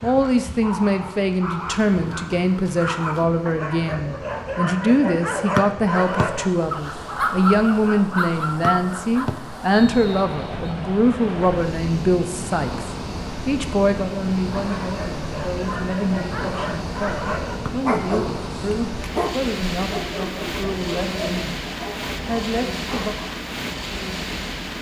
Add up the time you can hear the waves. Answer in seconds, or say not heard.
25 s.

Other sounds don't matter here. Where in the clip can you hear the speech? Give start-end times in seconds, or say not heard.
0.0-21.6, 22.2-23.1.